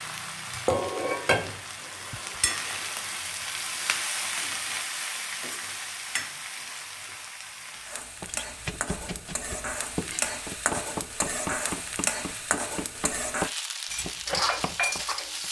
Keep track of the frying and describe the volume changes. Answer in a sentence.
The loudness of the frying goes down, then up.